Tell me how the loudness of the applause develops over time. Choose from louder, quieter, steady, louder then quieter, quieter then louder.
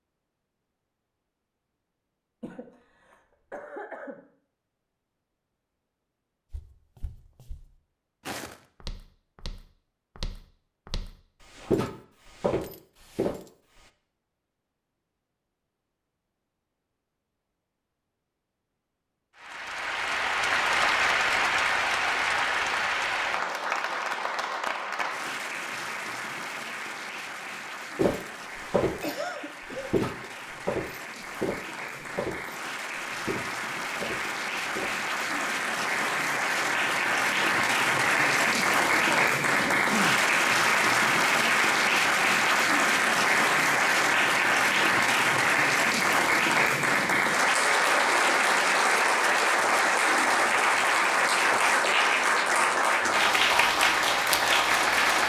quieter then louder.